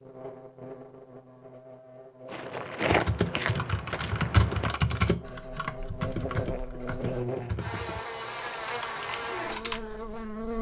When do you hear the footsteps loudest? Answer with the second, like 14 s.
3 s.